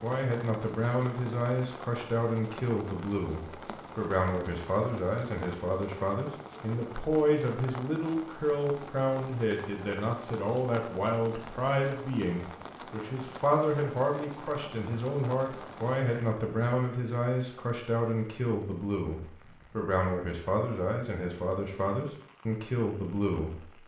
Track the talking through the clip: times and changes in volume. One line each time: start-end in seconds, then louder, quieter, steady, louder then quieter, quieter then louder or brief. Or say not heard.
0.0-23.7 steady.